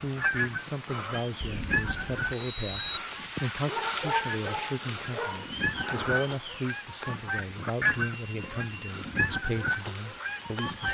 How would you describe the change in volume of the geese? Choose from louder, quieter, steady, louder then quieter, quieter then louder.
quieter then louder.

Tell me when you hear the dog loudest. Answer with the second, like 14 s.
4 s.